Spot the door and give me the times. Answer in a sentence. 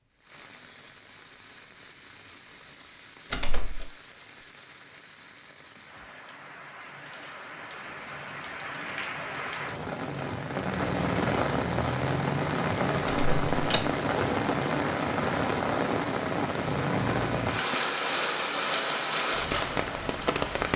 You can hear the door from 3.3 to 3.9 s and from 13.1 to 13.8 s.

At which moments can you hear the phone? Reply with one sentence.
The phone can't be heard in this clip.